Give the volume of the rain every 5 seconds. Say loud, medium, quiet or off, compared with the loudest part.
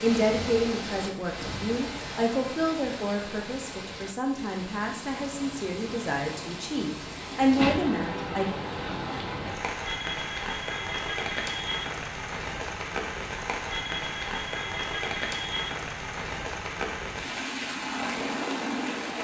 medium, loud, loud, loud.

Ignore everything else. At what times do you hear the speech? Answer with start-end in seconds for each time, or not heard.
0.0-8.6.